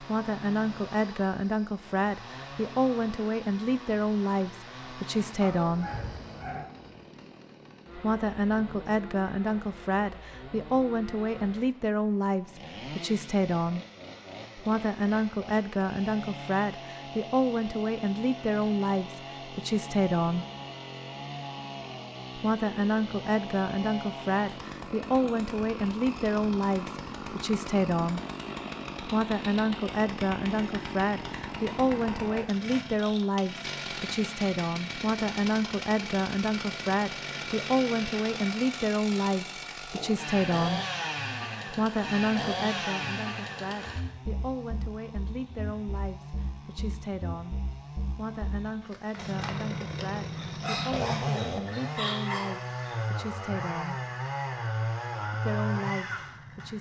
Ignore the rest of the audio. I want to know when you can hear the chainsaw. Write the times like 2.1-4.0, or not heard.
0.0-56.7.